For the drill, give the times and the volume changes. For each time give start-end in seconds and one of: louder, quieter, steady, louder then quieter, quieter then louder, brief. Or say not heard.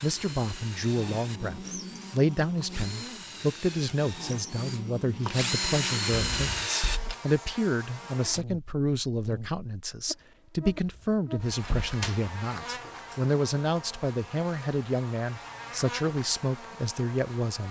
0.0-7.0 louder.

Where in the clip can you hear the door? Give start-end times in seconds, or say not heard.
6.1-7.2, 10.7-12.2.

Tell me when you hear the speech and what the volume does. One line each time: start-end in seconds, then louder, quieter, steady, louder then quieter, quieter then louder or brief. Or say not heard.
0.0-17.6 steady.